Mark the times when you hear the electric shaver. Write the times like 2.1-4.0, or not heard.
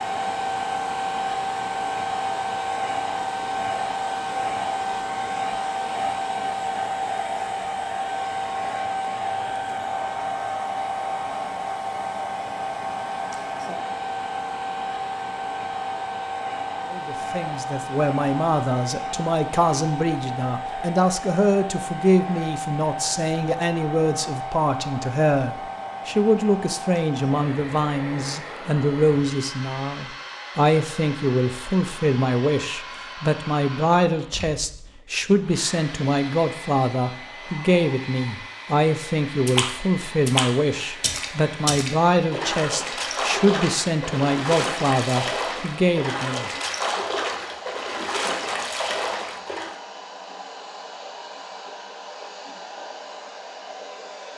not heard.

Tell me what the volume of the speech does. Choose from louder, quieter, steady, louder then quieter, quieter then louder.
steady.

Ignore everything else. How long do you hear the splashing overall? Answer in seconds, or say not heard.
10 s.